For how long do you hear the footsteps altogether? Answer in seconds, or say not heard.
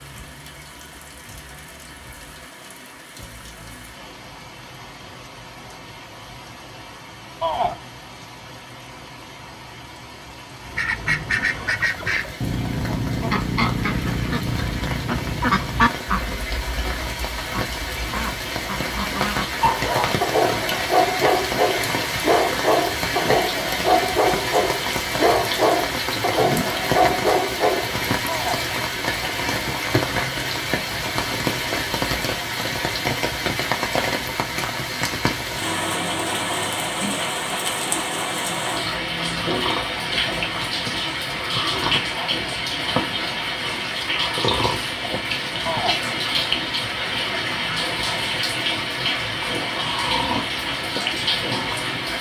not heard.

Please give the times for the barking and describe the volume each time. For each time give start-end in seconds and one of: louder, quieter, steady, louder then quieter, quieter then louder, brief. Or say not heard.
19.6-27.9 steady.